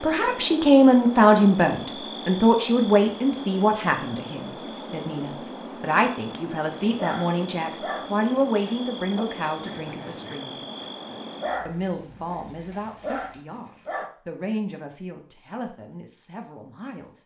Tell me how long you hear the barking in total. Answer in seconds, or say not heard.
7 s.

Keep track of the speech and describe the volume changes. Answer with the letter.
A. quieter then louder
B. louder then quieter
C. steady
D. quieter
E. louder
D.